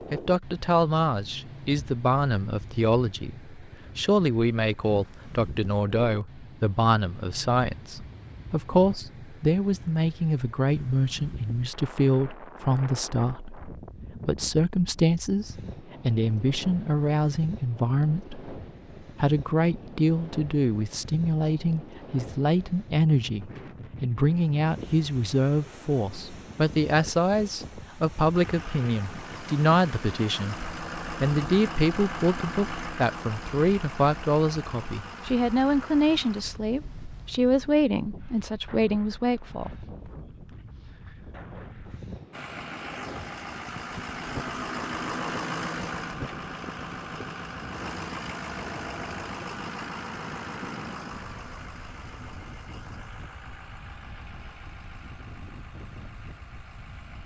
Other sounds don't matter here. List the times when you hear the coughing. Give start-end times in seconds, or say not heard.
not heard.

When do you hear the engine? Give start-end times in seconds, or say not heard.
28.3-36.5, 42.3-57.2.